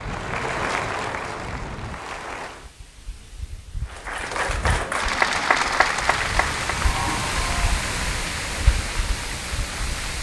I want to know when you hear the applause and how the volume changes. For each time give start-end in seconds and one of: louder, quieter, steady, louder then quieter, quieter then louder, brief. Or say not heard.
0.0-2.7 brief
3.9-10.1 quieter.